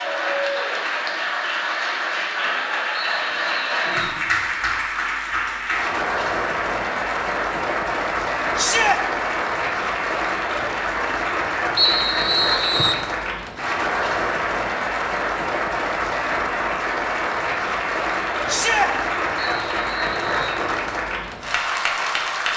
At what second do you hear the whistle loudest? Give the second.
12 s.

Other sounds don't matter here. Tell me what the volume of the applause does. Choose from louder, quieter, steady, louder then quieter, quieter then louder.
steady.